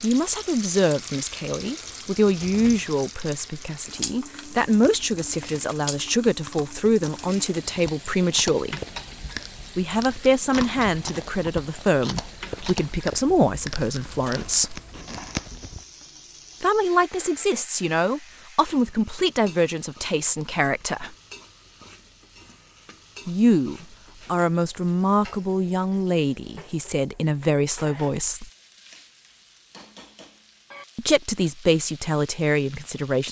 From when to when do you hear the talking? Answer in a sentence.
The talking can be heard from 0.0 to 8.8 s, from 9.8 to 14.8 s, from 16.6 to 21.1 s, from 23.2 to 28.5 s and from 30.9 to 33.2 s.